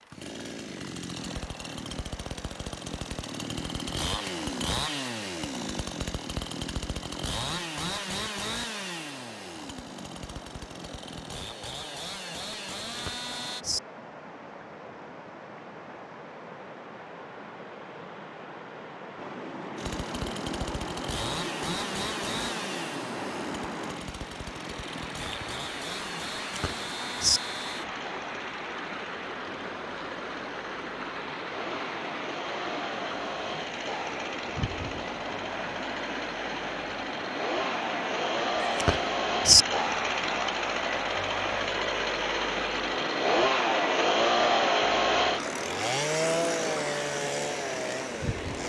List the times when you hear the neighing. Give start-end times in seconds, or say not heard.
12.9-13.8, 26.5-27.4, 38.6-39.6.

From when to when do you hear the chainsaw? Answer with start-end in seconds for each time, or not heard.
0.0-13.7, 19.8-48.6.